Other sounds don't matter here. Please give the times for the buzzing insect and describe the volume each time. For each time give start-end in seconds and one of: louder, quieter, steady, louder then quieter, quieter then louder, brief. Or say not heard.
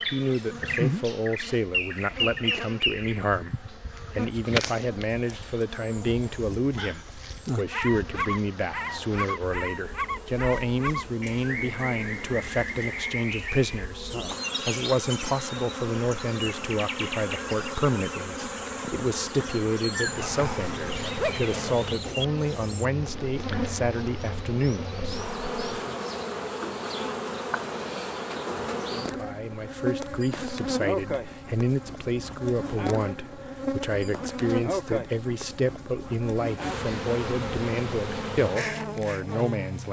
0.0-39.8 louder.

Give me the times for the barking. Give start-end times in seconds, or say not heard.
20.1-21.8.